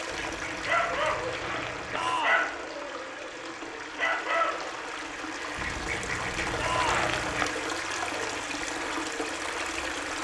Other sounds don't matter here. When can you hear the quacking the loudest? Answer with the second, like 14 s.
7 s.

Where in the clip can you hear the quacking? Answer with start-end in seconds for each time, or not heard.
0.1-2.2, 5.5-7.5.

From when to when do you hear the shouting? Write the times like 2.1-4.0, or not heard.
1.9-2.5, 6.5-7.1.